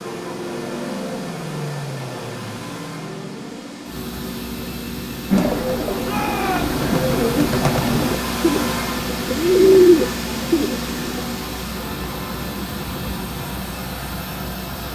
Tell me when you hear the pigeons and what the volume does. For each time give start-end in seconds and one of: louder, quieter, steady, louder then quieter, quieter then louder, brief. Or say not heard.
5.3-11.2 louder.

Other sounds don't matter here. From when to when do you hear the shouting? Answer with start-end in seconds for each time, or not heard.
6.0-6.8.